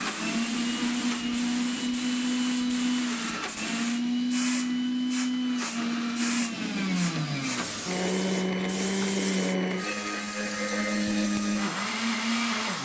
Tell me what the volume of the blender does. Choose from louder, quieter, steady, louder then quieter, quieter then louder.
steady.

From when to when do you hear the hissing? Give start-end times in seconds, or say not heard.
0.0-12.8.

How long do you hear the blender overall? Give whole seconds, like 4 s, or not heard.
13 s.